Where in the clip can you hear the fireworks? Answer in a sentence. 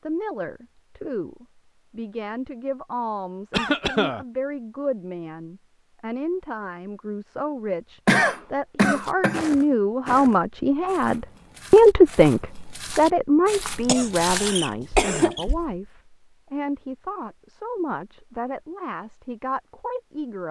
The fireworks can't be heard in this clip.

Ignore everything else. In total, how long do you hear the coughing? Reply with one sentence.
You can hear the coughing for 4 seconds altogether.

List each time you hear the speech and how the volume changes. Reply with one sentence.
You can hear the speech from 0.0 to 20.4 s, getting louder then quieter.